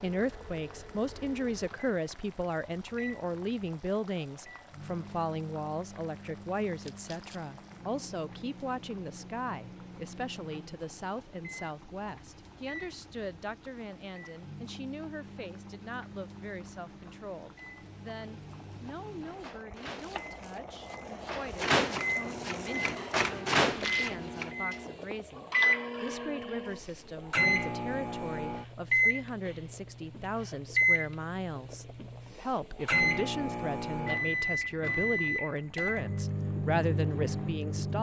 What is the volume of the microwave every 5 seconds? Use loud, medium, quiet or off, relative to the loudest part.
quiet, quiet, quiet, quiet, loud, loud, loud, loud.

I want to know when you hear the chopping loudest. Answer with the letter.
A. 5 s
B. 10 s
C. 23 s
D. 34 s
C.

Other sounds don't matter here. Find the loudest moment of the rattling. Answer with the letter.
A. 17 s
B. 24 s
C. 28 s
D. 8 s
B.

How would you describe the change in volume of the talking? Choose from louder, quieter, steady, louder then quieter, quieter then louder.
quieter then louder.